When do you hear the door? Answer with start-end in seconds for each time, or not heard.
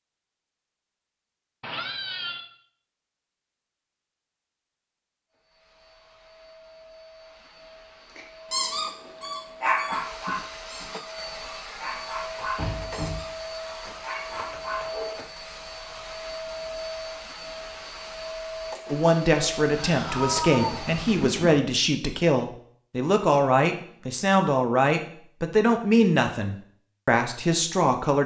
12.6-13.2.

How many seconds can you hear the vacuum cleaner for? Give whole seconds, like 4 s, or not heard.
16 s.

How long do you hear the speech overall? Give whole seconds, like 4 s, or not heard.
9 s.